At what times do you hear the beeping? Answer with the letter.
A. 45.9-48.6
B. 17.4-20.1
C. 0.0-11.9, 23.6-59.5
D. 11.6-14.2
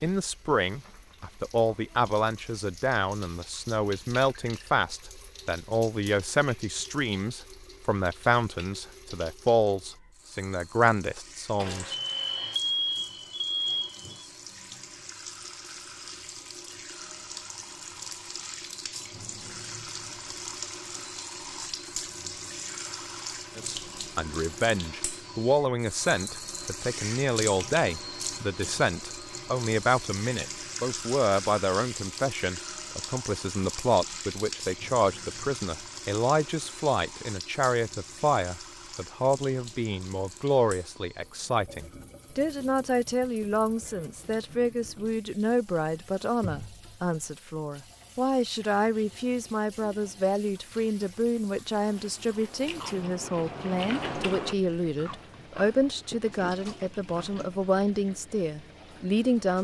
D.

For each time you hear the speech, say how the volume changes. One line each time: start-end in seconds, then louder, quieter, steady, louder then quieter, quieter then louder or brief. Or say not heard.
0.0-11.9 steady
23.6-59.5 steady.